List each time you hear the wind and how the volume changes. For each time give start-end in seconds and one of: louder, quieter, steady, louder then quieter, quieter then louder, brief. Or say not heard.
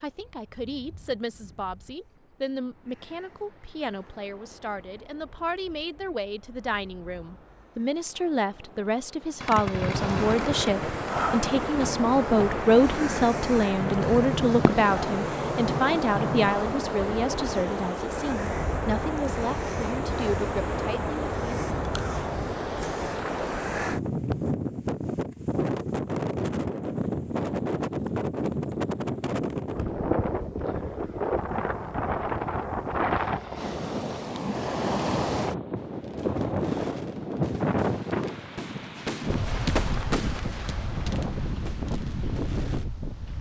0.0-43.3 louder.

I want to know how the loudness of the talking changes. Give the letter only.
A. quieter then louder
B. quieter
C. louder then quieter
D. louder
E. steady
C.